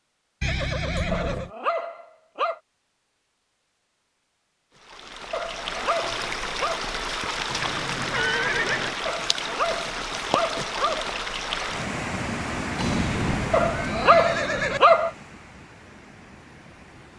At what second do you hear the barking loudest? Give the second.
15 s.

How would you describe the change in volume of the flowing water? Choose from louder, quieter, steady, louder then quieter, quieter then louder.
quieter.